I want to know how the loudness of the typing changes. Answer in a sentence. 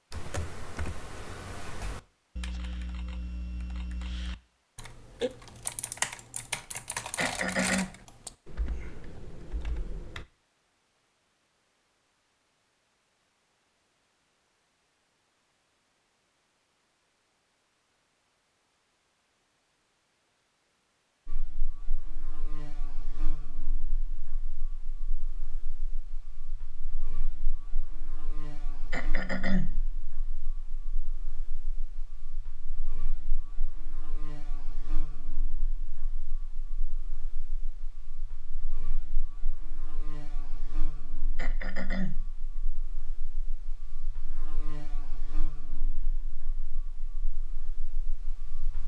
The volume of the typing goes up, then down.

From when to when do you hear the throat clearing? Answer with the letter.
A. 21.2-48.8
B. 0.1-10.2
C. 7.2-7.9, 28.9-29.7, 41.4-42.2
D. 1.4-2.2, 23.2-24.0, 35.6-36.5
C.